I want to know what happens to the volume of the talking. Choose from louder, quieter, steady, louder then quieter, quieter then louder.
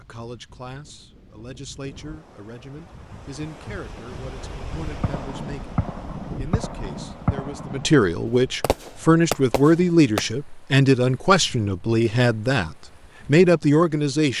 louder.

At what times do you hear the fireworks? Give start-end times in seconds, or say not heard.
5.0-7.9, 8.6-10.2.